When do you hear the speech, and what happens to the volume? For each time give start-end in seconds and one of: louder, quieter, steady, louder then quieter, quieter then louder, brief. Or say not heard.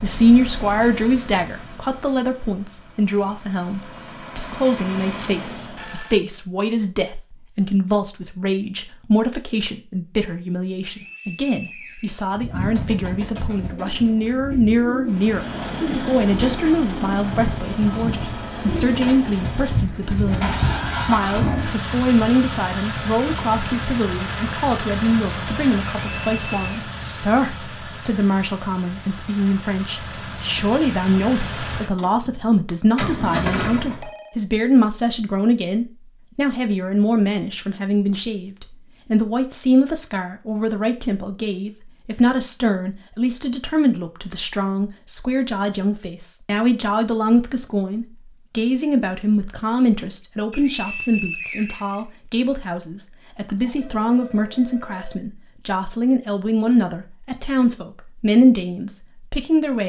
0.0-59.8 steady.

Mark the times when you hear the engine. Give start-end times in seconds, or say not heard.
0.0-6.0, 15.1-34.1.